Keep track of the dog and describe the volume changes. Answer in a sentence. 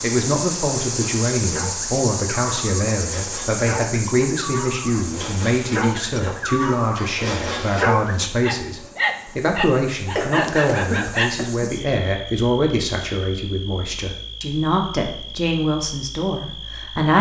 The loudness of the dog goes up.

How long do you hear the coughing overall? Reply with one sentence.
You can hear the coughing for 2 seconds altogether.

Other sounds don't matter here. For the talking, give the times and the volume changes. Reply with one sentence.
You can hear the talking from 0.0 to 17.1 s, at a steady volume.